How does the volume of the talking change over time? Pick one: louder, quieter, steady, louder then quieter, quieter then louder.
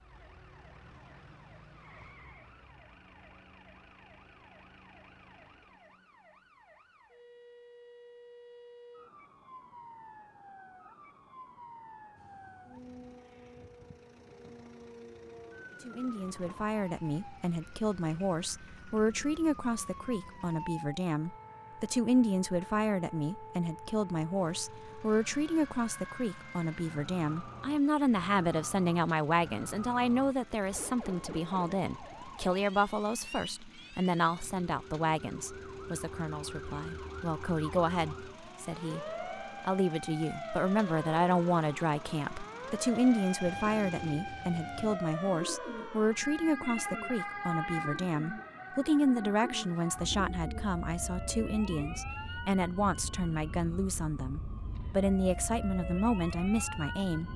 steady.